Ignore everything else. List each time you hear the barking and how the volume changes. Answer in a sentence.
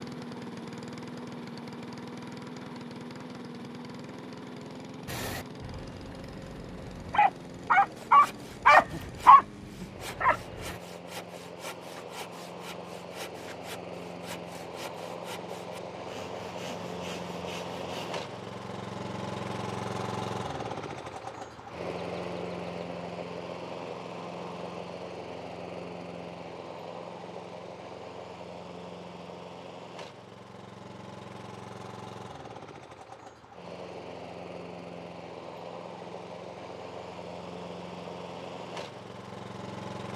The barking can be heard from 5.1 to 10.8 s, getting louder then quieter.